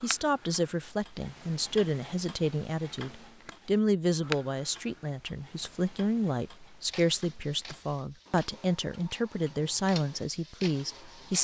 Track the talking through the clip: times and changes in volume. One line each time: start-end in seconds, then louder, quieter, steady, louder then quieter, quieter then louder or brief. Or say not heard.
0.0-11.3 steady.